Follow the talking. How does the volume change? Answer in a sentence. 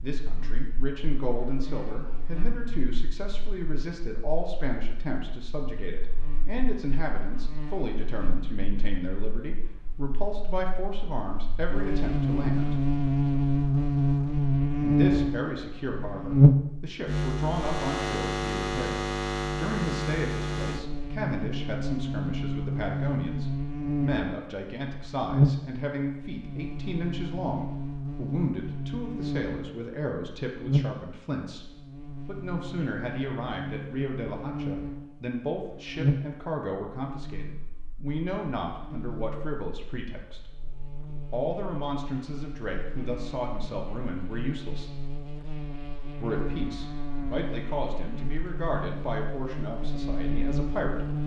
The volume of the talking stays about the same.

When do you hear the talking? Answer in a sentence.
You can hear the talking from 0.0 to 12.8 s, from 14.8 to 31.6 s, from 32.2 to 40.4 s, from 41.3 to 45.0 s and from 46.2 to 51.0 s.